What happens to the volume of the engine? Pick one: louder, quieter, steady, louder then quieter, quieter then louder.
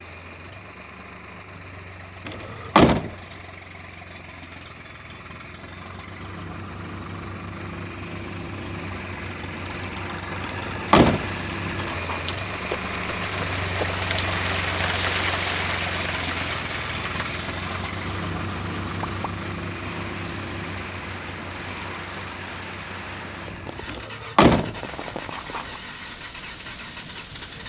louder then quieter.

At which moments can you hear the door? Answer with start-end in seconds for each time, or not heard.
2.2-3.4, 10.4-12.2, 23.9-25.6.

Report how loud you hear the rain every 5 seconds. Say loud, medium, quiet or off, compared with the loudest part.
off, off, loud, loud, medium, medium.